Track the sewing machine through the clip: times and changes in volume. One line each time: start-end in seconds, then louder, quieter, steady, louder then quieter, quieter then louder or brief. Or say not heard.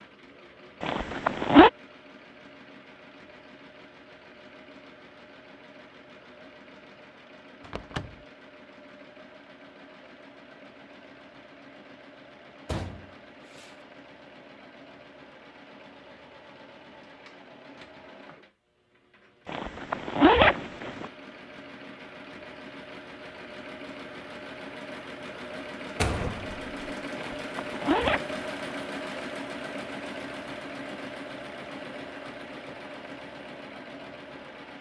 0.0-34.7 louder.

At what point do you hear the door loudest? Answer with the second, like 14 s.
26 s.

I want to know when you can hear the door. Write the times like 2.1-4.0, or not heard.
7.6-8.2, 12.7-13.8, 26.0-26.6.